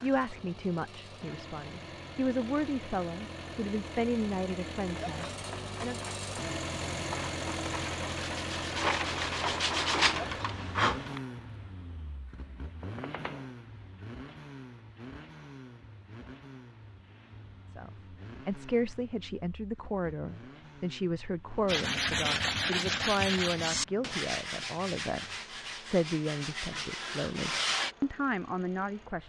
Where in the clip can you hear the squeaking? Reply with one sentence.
You can hear the squeaking from 12.8 to 13.5 s.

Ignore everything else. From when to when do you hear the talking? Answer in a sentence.
The talking can be heard from 0.0 to 6.0 s and from 17.7 to 29.2 s.